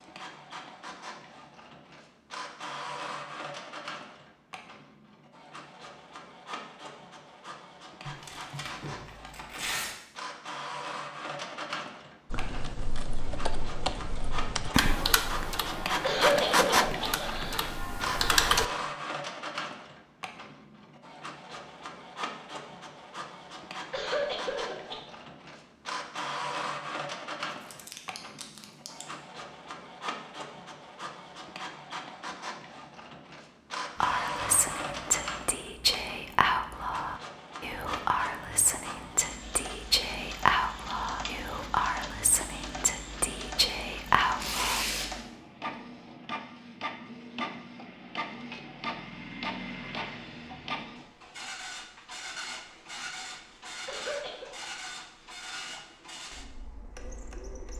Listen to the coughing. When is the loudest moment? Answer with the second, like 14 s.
16 s.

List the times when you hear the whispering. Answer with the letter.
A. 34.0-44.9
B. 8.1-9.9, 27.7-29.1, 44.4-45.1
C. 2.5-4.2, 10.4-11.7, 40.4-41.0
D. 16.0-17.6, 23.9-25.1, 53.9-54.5
A.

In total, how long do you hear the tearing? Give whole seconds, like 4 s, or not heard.
4 s.